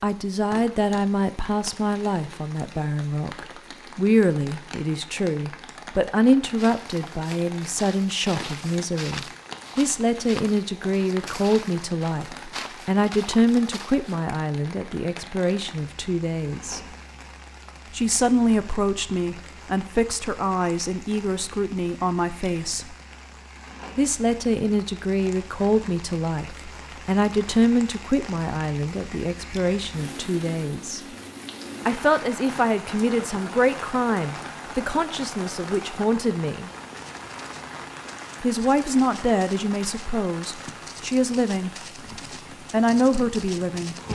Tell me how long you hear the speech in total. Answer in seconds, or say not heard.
38 s.